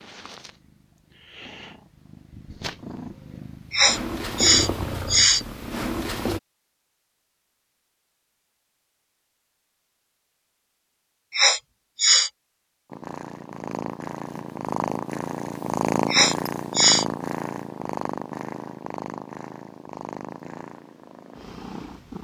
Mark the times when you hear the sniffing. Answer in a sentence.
You can hear the sniffing from 3.7 to 5.5 s, from 11.3 to 12.3 s and from 16.1 to 17.1 s.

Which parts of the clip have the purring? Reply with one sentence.
The purring can be heard from 0.0 to 6.4 s and from 12.8 to 22.1 s.